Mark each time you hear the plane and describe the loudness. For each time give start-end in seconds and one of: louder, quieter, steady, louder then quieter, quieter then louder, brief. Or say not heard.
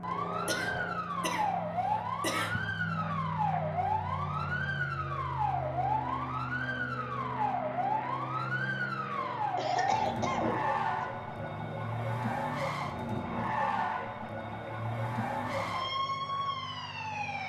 0.0-17.4 quieter.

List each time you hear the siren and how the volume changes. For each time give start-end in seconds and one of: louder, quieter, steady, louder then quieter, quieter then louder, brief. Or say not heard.
0.0-17.4 steady.